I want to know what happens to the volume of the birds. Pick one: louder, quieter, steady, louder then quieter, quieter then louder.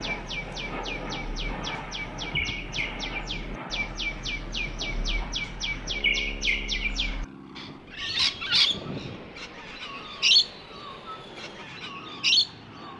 louder.